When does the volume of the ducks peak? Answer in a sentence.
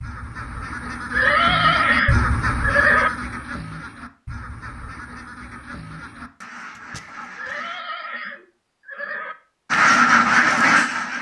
The loudest moment of the ducks is at 10 seconds.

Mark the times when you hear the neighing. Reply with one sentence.
You can hear the neighing from 1.1 to 3.1 s and from 7.3 to 9.3 s.